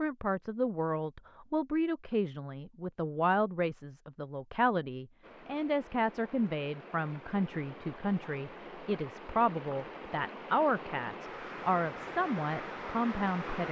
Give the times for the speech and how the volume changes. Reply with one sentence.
The speech can be heard from 0.0 to 13.6 s, at a steady volume.